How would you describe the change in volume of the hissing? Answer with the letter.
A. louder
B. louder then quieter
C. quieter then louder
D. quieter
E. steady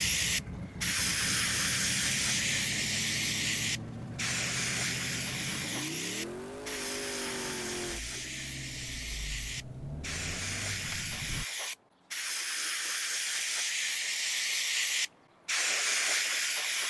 C.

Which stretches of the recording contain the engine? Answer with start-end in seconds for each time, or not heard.
0.0-11.4.